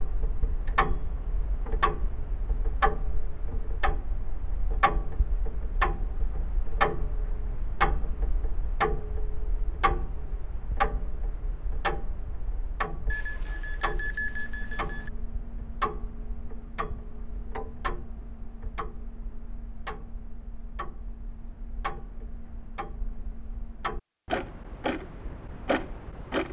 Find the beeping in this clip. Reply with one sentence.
You can hear the beeping from 13.1 to 15.1 s.